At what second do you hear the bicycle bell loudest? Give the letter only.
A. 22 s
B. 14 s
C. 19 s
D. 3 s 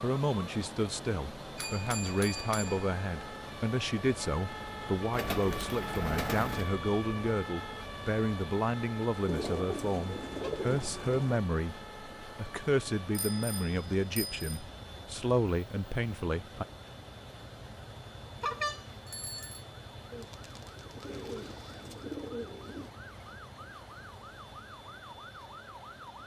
C.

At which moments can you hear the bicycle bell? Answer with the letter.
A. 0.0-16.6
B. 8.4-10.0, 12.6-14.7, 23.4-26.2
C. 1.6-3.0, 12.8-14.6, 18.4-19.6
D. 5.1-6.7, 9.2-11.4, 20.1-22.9
C.